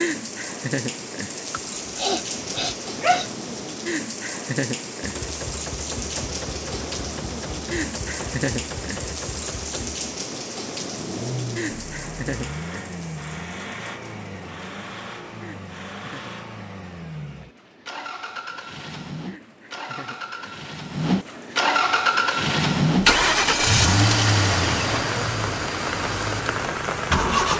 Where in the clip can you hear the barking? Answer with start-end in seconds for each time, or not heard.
1.5-3.3.